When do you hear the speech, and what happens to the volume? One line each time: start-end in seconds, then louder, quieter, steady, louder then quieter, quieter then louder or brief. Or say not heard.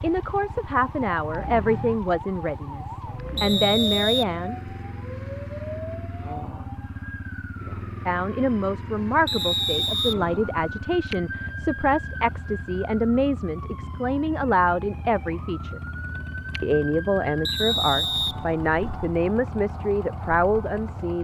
0.0-4.5 quieter then louder
8.1-15.8 steady
16.6-21.1 steady.